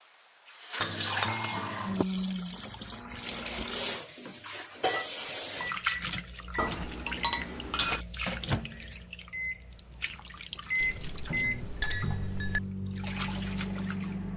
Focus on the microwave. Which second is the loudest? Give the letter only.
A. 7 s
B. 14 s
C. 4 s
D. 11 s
D.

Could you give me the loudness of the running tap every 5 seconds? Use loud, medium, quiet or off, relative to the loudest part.
loud, loud, medium.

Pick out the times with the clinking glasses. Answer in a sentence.
You can hear the clinking glasses from 0.8 to 2.0 s, from 6.5 to 8.1 s and from 10.8 to 12.6 s.